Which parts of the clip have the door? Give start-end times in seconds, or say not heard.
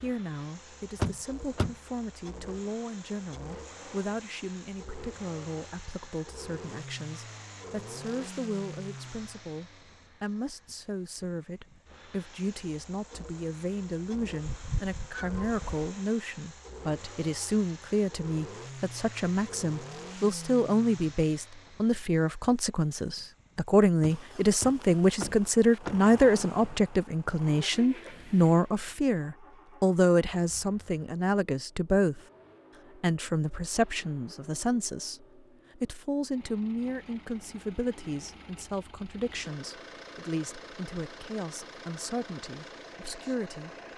0.9-1.8, 24.0-26.1.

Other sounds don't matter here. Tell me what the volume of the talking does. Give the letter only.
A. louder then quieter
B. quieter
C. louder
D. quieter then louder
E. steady
A.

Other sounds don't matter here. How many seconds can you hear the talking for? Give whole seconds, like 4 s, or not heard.
43 s.